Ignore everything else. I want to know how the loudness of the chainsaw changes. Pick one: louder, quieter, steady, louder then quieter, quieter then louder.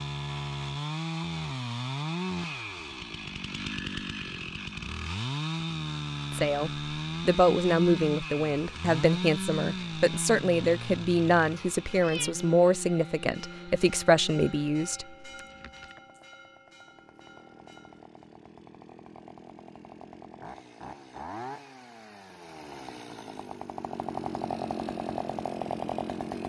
quieter then louder.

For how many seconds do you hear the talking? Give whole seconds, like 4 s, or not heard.
9 s.